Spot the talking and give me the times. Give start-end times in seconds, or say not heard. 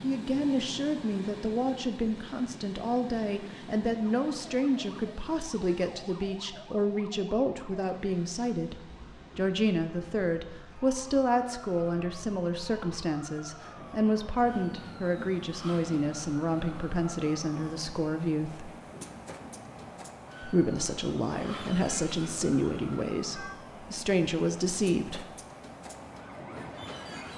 0.0-18.7, 20.4-25.2.